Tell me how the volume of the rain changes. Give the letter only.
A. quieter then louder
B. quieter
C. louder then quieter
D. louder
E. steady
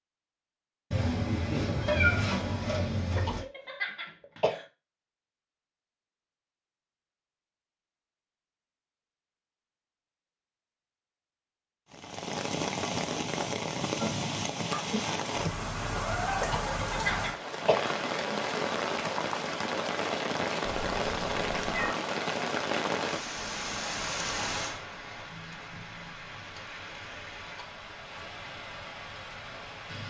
B.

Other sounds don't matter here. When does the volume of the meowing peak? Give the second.
2 s.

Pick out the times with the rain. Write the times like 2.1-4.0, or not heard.
11.9-30.0.